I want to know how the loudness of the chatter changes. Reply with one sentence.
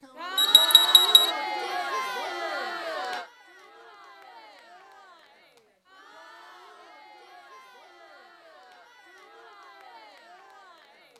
The loudness of the chatter goes down.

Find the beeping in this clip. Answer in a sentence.
The beeping can be heard from 0.3 to 1.4 s.